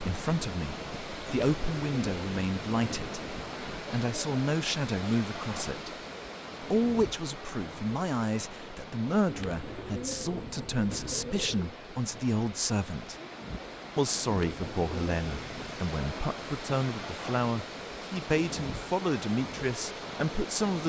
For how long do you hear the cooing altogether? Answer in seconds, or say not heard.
6 s.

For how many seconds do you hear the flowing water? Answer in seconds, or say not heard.
21 s.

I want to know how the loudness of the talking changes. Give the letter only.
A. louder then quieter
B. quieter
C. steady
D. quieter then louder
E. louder
C.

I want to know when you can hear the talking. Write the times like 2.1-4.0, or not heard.
0.0-6.0, 6.6-13.2, 13.9-20.8.